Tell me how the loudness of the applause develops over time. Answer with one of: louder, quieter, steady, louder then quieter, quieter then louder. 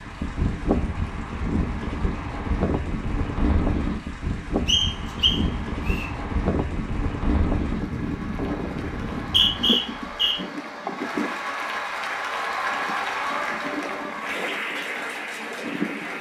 louder.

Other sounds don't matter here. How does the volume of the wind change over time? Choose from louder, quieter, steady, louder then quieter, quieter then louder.
quieter.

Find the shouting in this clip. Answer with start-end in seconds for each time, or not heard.
not heard.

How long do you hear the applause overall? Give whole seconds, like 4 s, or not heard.
16 s.